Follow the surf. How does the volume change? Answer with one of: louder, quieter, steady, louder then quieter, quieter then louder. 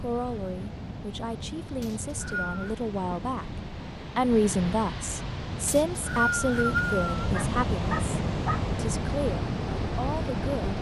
louder.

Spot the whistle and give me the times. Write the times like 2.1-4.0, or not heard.
1.8-2.8, 5.7-7.3.